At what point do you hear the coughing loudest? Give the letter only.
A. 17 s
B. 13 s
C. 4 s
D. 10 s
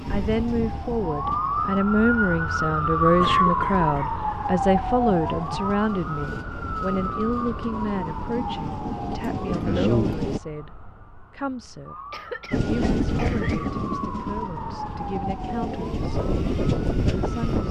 D.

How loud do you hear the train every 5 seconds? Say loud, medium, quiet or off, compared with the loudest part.
medium, medium, loud, loud.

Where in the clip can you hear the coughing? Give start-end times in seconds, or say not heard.
3.2-4.2, 9.2-10.2, 12.1-13.7.